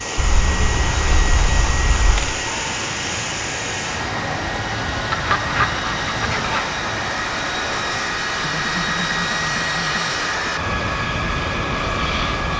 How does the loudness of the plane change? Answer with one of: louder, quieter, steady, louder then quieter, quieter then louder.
louder.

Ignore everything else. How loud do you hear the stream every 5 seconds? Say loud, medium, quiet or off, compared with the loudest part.
loud, loud, off.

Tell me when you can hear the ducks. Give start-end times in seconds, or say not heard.
0.1-2.4, 5.1-6.7, 8.4-10.1.